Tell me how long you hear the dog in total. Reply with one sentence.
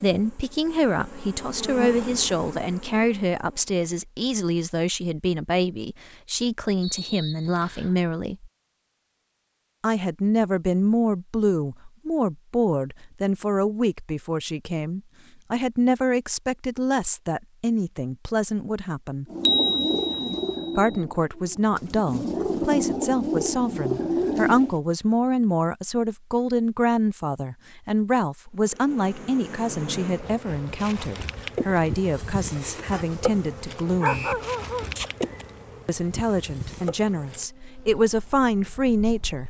You can hear the dog for 5 seconds altogether.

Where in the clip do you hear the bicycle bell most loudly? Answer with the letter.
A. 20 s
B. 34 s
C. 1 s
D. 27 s
A.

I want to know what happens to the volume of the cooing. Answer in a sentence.
The volume of the cooing goes down, then up.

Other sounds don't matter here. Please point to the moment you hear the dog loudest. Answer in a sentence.
The volume of the dog peaks at 34 seconds.